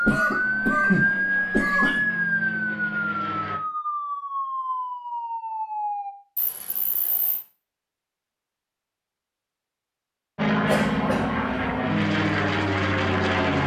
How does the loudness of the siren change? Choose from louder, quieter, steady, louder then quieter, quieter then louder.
quieter.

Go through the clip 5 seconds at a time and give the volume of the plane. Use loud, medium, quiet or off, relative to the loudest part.
quiet, off, loud.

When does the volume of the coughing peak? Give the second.
1 s.